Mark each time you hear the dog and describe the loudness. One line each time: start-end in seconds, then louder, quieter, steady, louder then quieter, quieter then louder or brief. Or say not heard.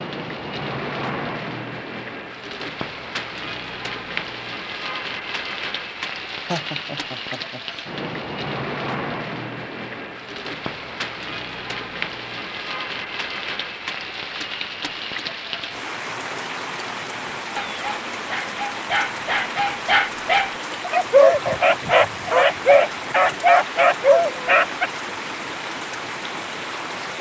17.6-24.9 louder.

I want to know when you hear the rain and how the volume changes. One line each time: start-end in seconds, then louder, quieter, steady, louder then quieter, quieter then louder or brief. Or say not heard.
0.0-27.1 steady.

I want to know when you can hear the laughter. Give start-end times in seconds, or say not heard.
6.5-7.8.